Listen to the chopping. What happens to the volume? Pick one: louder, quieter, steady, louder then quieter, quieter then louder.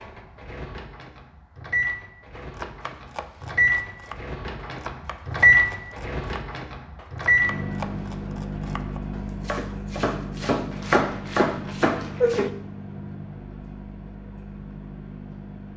louder.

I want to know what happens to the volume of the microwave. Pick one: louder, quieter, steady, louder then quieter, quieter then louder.
louder then quieter.